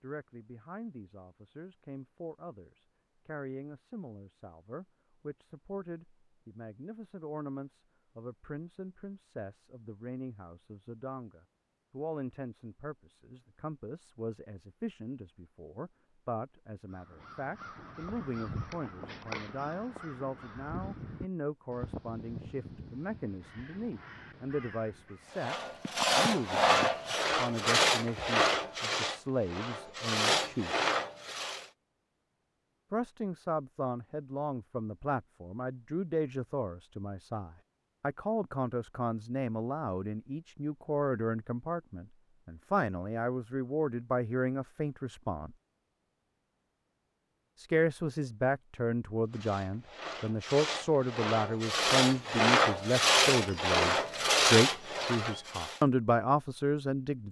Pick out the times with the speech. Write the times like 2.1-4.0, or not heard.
0.0-30.8, 32.9-45.5, 47.5-57.2.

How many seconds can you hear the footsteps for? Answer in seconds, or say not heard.
not heard.